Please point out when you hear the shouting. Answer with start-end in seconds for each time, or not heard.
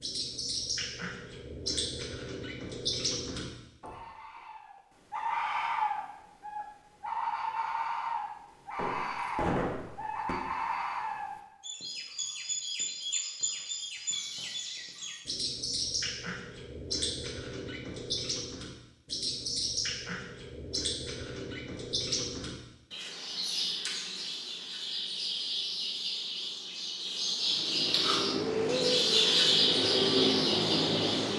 not heard.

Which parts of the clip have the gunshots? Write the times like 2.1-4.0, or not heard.
8.8-10.3.